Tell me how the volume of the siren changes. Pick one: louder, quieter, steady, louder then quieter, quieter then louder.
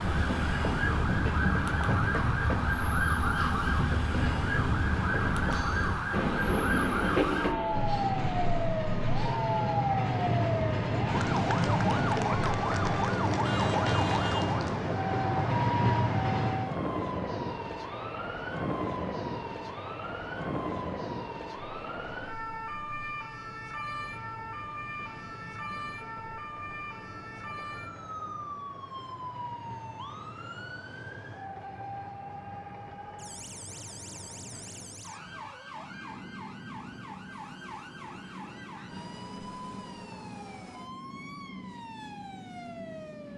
quieter.